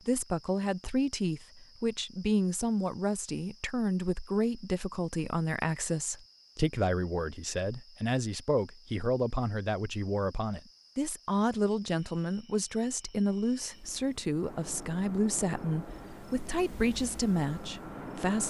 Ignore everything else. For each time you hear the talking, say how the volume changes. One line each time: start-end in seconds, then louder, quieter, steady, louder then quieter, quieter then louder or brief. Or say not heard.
0.1-18.4 steady.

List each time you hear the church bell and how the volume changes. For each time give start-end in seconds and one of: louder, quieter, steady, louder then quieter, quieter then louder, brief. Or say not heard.
not heard.